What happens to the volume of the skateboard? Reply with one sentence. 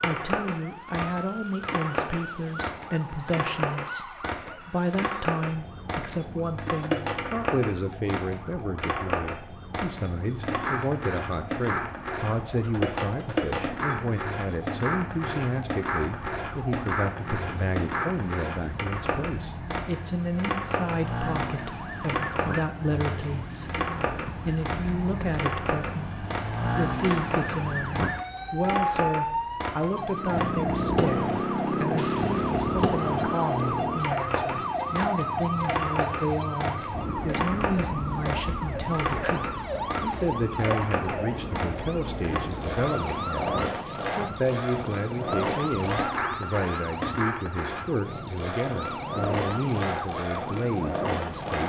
The loudness of the skateboard stays about the same.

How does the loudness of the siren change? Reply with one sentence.
The volume of the siren goes up, then down.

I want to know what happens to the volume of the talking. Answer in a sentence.
The loudness of the talking stays about the same.